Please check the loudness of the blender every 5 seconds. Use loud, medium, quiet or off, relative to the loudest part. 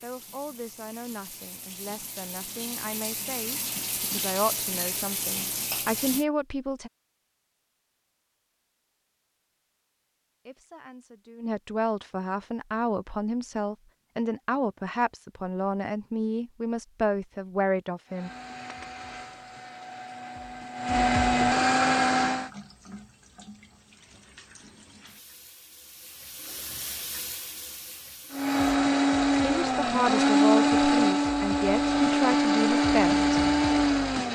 off, off, off, quiet, loud, loud, loud.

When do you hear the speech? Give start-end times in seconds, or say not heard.
0.0-6.9, 10.4-18.3, 29.4-33.2.